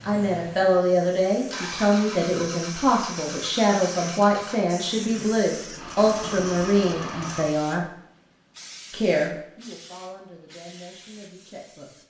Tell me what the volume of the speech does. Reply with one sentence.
The volume of the speech goes down.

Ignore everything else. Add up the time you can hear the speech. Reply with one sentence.
The speech can be heard for 11 seconds in total.